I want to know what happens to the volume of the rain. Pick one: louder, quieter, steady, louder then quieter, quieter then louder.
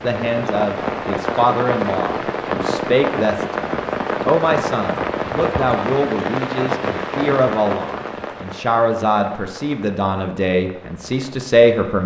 quieter.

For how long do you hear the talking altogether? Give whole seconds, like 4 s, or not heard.
12 s.